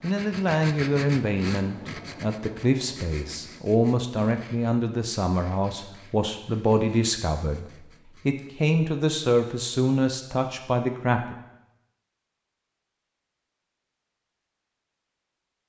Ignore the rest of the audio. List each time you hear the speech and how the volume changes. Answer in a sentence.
The speech can be heard from 0.0 to 11.3 s, at a steady volume.